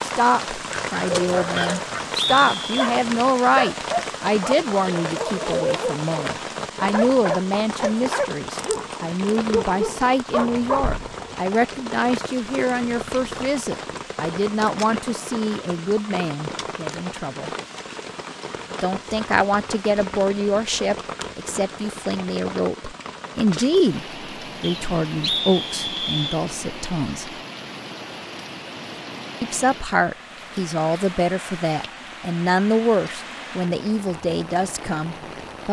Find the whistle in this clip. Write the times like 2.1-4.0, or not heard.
1.6-2.9, 24.6-26.4.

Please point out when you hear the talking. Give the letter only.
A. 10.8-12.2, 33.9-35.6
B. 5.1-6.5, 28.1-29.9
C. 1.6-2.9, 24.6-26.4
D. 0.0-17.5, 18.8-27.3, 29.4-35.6
D.